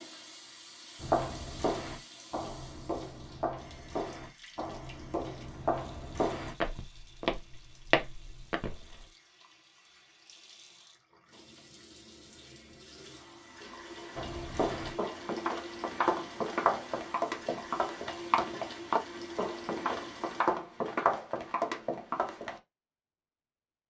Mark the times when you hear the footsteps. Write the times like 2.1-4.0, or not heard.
1.0-9.1, 14.2-22.6.